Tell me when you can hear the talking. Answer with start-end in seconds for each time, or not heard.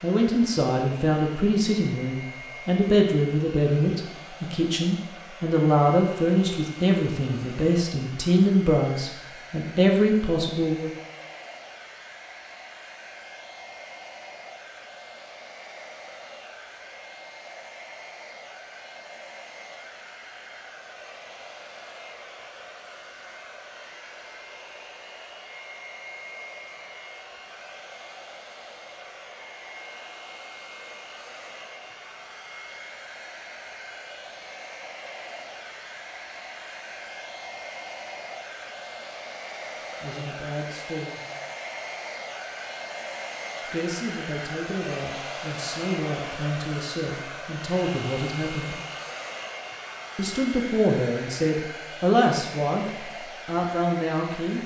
0.0-10.9, 40.0-41.2, 43.6-48.8, 50.1-54.6.